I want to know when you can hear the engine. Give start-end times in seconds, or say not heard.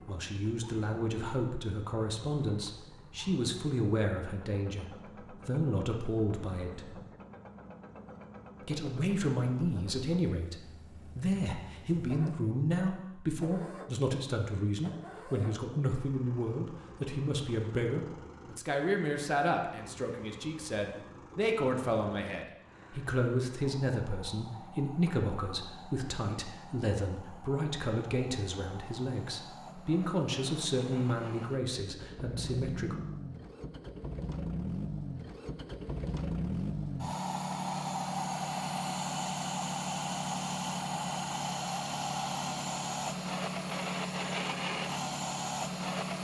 0.0-46.1.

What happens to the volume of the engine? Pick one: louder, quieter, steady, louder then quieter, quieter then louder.
louder.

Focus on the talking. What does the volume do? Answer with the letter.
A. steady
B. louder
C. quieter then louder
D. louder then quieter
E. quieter
A.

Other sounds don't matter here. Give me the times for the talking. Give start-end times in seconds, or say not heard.
0.0-7.0, 8.6-33.0.